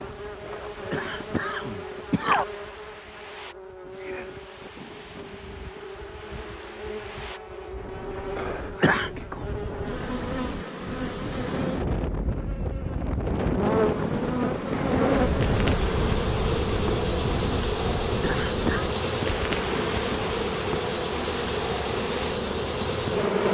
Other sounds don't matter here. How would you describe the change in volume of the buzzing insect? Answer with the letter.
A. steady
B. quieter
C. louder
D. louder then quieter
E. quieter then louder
C.